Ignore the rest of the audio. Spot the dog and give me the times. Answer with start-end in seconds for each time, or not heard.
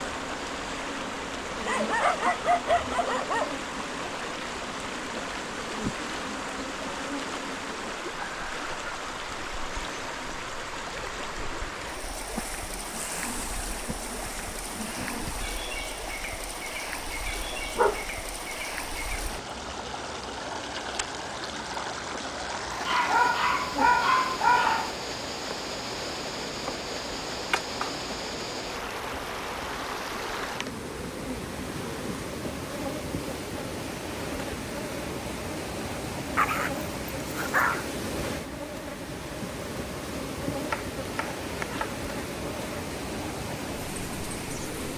1.6-3.5, 17.4-18.1, 22.7-25.1, 36.4-37.9.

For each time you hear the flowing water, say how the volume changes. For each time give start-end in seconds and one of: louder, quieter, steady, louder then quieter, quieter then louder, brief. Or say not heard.
0.0-44.9 steady.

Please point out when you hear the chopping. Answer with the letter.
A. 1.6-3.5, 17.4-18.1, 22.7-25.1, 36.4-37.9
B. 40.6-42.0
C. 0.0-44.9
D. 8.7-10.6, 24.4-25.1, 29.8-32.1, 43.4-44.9
B.